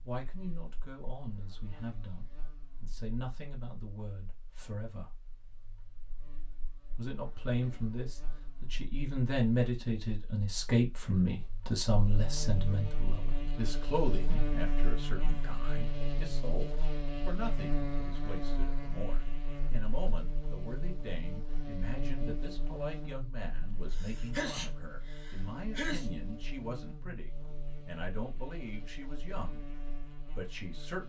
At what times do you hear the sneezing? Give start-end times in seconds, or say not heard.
23.9-26.1.